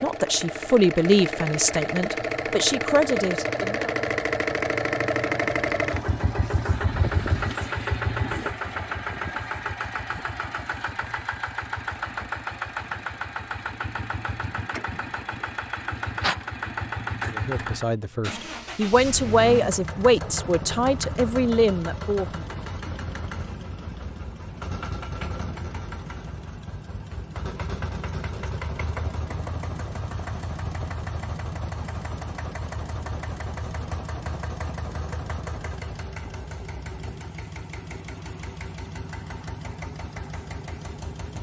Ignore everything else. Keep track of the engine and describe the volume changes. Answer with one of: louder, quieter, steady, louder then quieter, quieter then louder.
quieter.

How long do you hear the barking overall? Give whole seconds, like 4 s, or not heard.
not heard.